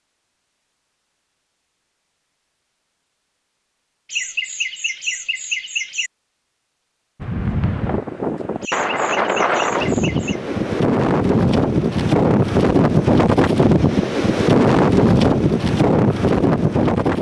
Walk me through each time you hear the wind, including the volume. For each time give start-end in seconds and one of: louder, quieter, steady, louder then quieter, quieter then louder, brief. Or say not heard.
7.2-17.1 louder.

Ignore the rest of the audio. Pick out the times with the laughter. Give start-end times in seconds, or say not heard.
4.1-6.1, 8.6-10.4.